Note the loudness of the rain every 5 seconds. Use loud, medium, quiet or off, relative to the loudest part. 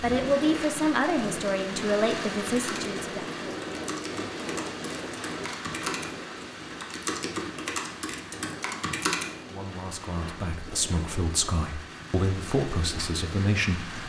loud, medium, medium.